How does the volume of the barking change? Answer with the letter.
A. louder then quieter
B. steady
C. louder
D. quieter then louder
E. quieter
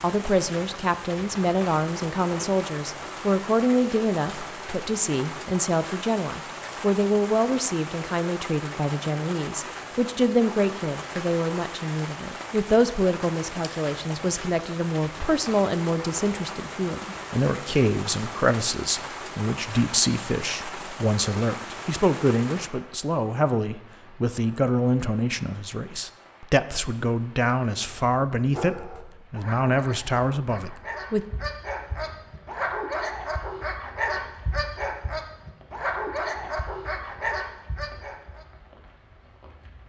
C.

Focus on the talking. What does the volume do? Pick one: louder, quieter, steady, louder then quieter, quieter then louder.
steady.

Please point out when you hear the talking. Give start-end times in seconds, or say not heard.
0.0-31.2.